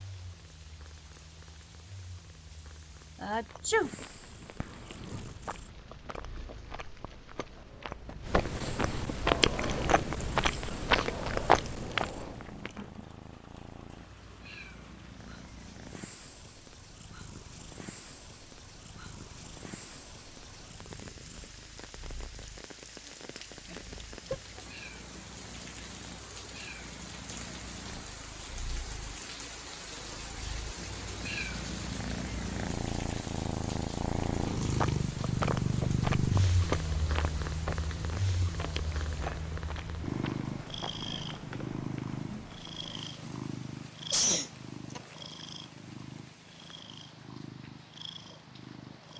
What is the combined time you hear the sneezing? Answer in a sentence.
The sneezing can be heard for 2 seconds in total.